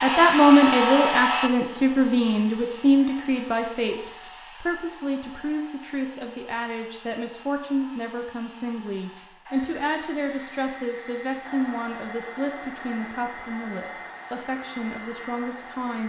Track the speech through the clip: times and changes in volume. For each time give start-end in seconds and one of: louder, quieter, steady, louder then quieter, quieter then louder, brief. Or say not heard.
0.0-16.0 quieter.